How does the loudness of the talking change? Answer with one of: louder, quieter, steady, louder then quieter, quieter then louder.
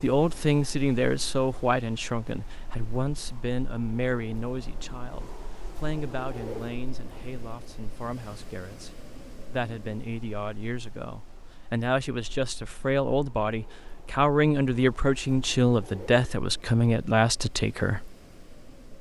quieter then louder.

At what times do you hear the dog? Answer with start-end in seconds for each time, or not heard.
not heard.